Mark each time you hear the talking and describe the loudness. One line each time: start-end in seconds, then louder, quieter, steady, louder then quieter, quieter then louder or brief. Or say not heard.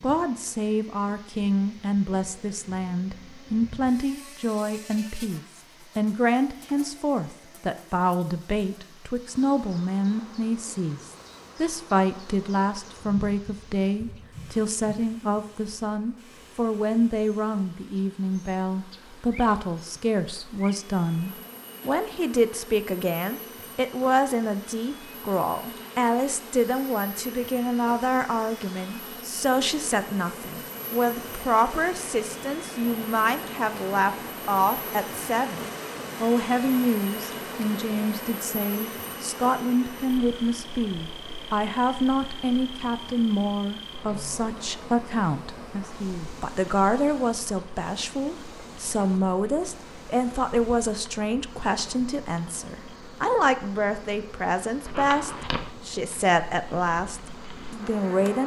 0.0-58.4 steady.